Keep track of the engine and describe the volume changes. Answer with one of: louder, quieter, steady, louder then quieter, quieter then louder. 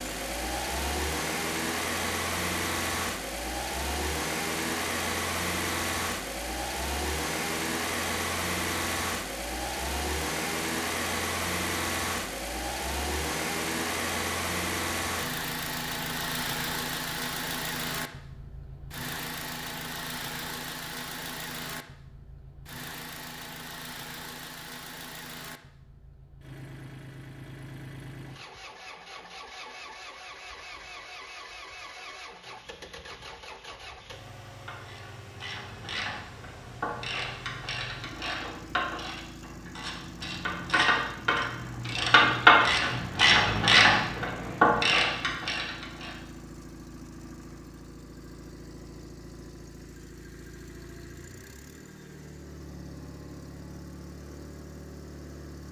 quieter.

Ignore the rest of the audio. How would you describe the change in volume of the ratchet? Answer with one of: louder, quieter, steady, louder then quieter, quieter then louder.
louder.